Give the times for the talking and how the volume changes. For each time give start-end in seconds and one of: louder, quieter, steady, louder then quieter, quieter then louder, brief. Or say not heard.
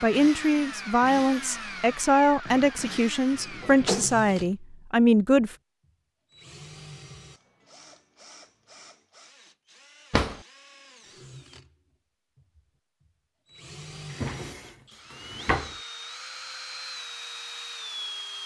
0.0-5.5 steady.